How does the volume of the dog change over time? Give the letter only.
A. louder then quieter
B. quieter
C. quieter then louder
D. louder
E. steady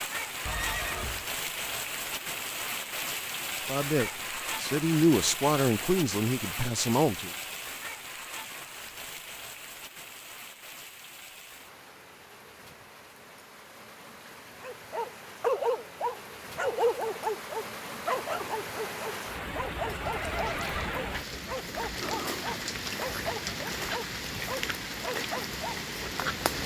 B.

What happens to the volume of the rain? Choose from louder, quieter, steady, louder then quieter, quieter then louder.
quieter then louder.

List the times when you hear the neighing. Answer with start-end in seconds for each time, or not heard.
0.5-1.2, 20.0-21.1.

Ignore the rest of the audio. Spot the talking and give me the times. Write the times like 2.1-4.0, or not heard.
3.6-7.3.